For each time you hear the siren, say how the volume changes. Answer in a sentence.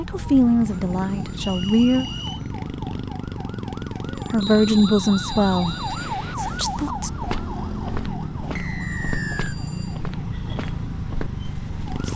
The siren can be heard from 0.0 to 12.1 s, at a steady volume.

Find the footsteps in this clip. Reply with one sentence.
The footsteps can be heard from 6.3 to 12.1 s.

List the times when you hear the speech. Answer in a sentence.
You can hear the speech from 0.0 to 2.0 s and from 4.3 to 7.1 s.